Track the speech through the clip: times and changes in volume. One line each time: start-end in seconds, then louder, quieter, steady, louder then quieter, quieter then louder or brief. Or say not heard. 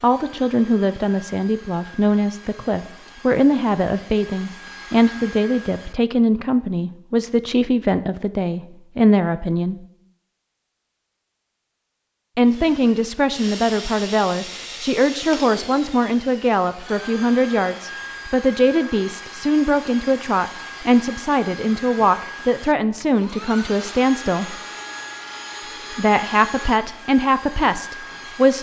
0.0-9.8 steady
12.3-24.6 steady
25.9-28.5 brief.